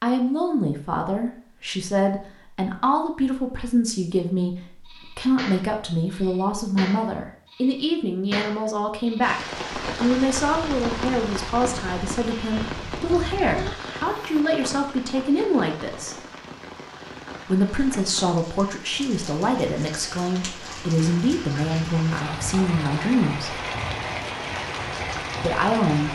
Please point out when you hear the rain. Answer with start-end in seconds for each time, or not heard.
9.2-26.1.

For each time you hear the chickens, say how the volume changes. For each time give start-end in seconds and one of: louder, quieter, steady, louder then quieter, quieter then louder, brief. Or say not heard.
not heard.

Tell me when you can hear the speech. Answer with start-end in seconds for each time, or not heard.
0.0-16.1, 17.4-23.6, 25.4-26.1.